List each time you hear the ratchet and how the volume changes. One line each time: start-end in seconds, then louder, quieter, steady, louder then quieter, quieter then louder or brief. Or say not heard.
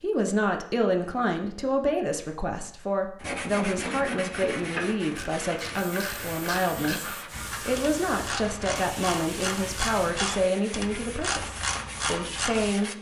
4.5-12.7 louder.